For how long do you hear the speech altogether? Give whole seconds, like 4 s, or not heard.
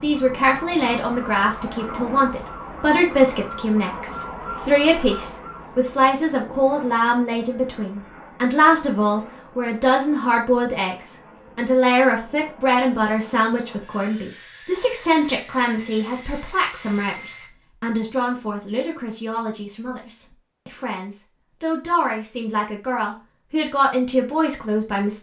25 s.